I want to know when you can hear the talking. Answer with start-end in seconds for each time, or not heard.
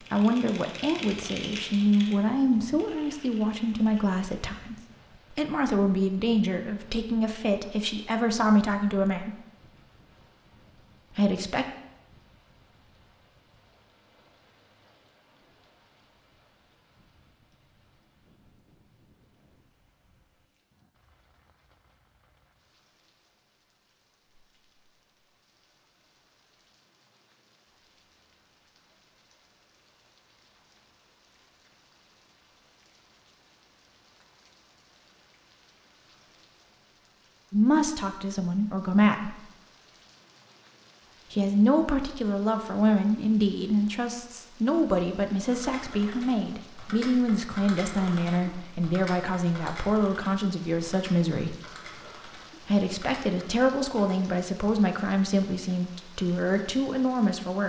0.1-9.3, 11.2-11.7, 37.5-39.4, 41.3-51.5, 52.6-57.6.